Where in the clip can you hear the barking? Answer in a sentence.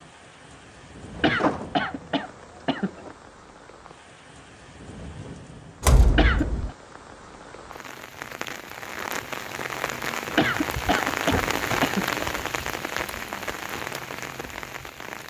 The barking can't be heard in this clip.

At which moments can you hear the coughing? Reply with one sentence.
You can hear the coughing from 1.1 to 3.1 s, from 6.1 to 6.5 s and from 10.3 to 12.2 s.